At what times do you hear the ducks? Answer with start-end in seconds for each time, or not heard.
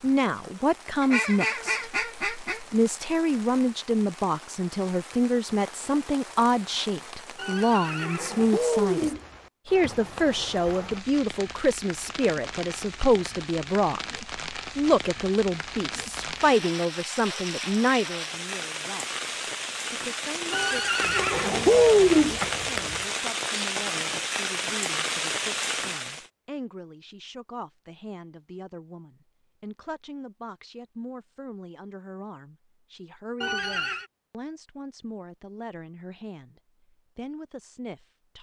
1.0-3.0, 21.0-23.1.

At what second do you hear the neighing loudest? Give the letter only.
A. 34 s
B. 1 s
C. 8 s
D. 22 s
D.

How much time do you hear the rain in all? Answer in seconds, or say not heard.
26 s.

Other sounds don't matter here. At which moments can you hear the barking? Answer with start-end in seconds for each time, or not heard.
not heard.